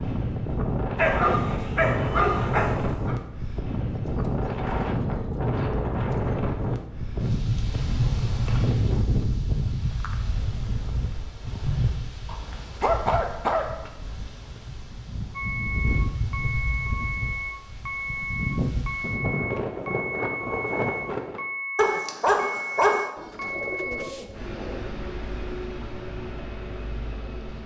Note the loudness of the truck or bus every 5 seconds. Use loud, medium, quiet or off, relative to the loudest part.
off, off, off, loud, loud, medium.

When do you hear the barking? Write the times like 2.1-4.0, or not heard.
0.9-3.1, 12.2-13.8, 21.8-23.1.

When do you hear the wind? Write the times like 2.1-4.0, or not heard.
0.0-21.4.